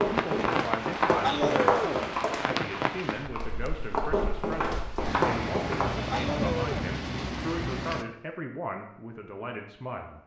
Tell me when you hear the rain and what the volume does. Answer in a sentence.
You can hear the rain from 0.0 to 8.1 s, getting quieter then louder.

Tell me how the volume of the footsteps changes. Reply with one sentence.
The loudness of the footsteps goes down, then up.